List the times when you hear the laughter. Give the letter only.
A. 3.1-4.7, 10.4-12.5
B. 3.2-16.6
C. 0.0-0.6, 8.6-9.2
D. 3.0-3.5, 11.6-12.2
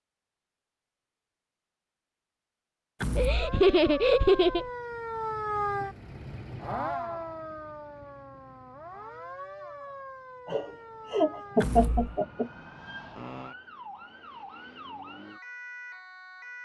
A.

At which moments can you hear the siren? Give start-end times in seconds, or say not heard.
3.2-16.6.